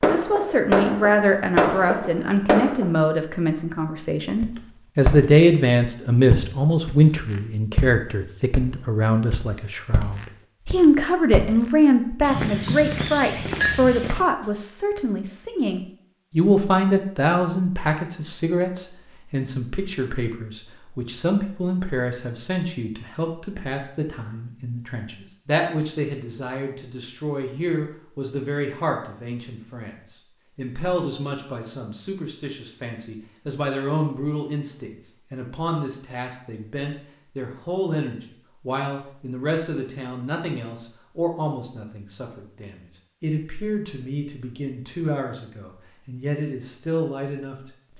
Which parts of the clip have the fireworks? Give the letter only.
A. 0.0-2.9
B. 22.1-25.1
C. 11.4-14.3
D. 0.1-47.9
A.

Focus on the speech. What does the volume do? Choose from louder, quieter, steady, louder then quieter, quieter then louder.
quieter.